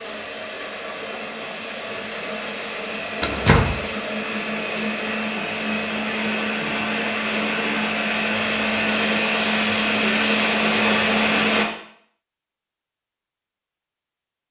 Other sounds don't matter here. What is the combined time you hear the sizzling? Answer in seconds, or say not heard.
not heard.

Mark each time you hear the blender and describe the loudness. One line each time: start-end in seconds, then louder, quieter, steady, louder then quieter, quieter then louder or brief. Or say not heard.
0.0-11.7 louder.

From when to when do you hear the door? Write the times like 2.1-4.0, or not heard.
3.2-3.8.